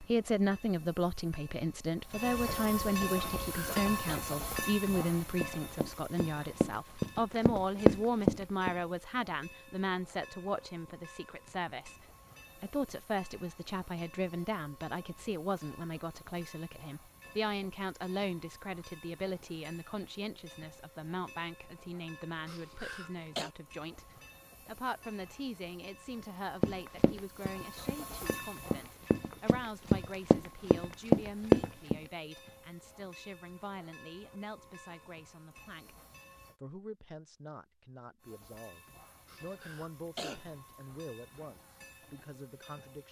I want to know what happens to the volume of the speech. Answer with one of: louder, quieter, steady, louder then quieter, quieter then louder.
quieter.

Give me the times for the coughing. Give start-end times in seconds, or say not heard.
3.4-4.2, 22.4-23.5, 39.2-40.9.